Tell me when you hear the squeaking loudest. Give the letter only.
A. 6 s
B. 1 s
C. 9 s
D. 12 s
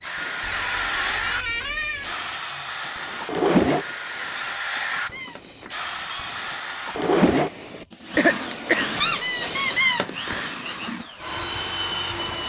C.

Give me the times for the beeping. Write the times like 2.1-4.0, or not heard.
not heard.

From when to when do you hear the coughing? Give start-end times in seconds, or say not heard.
7.7-8.9.